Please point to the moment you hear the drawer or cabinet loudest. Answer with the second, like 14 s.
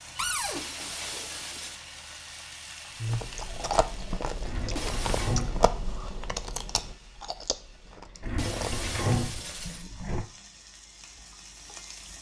9 s.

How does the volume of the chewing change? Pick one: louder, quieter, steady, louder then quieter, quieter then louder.
quieter.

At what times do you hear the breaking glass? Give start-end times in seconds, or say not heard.
0.6-1.9, 4.8-5.4, 8.3-9.9.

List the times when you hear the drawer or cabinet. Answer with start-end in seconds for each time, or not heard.
0.1-0.6, 4.4-5.7, 8.2-10.3.